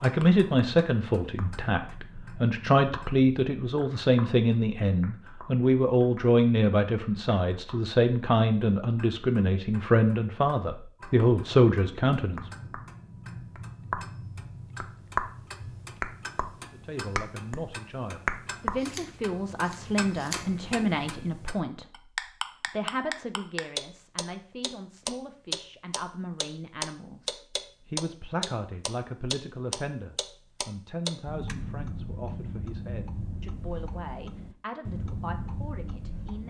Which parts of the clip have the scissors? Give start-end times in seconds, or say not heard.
18.7-20.5.